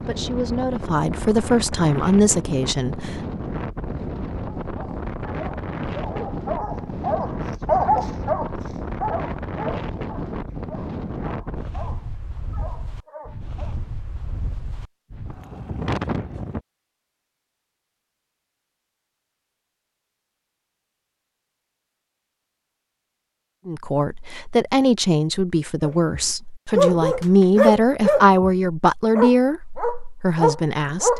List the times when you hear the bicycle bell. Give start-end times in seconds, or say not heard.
not heard.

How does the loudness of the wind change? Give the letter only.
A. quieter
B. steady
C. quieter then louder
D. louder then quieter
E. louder
B.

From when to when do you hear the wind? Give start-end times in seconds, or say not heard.
0.0-16.6.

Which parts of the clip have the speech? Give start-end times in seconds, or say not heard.
0.0-3.2, 23.6-31.1.